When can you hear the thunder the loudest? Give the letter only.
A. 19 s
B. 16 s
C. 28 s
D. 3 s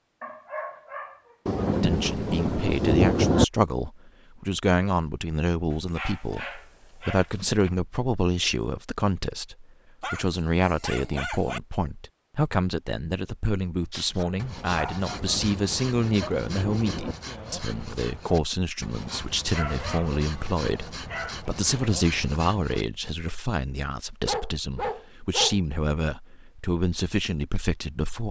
D.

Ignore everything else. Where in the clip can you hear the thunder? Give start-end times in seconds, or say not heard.
1.4-3.5, 15.1-17.1.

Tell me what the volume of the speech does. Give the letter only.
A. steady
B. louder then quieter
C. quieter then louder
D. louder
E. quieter
A.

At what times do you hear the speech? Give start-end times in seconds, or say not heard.
1.8-28.2.